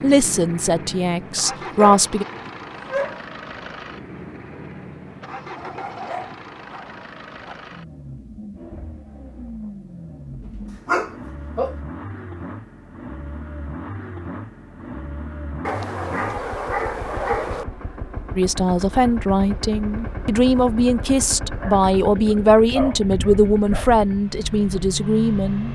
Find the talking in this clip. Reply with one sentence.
You can hear the talking from 0.0 to 2.2 s and from 18.4 to 25.7 s.